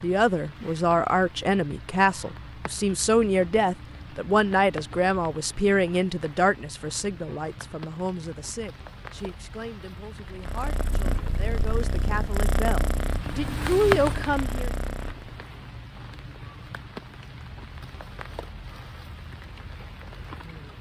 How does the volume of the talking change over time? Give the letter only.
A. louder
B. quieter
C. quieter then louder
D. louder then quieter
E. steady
C.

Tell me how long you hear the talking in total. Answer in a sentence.
You can hear the talking for 15 seconds altogether.